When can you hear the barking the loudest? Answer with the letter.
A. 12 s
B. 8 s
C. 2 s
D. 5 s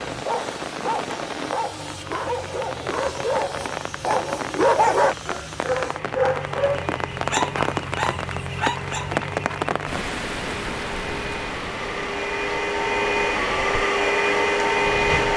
D.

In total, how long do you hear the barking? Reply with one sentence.
You can hear the barking for 9 seconds altogether.